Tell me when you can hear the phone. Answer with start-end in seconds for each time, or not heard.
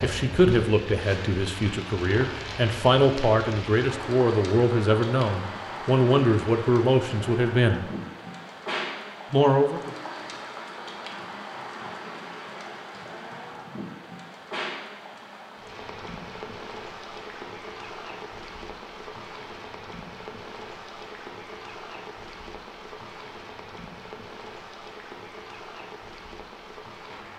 not heard.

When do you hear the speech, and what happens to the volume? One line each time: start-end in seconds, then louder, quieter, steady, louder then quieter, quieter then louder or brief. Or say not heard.
0.0-7.8 steady
9.3-9.9 brief.